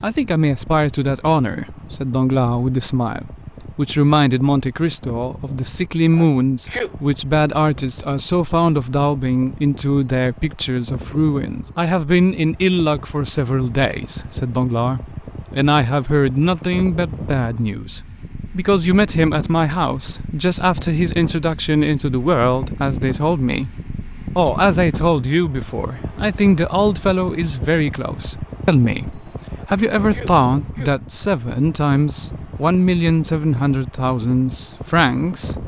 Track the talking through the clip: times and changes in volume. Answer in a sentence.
You can hear the talking from 0.0 to 35.6 s, at a steady volume.